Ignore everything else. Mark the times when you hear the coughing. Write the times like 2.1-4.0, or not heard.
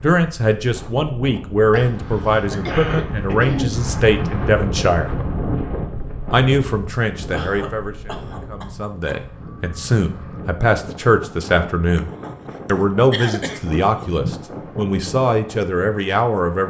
1.7-3.8, 7.3-9.2, 11.9-14.3.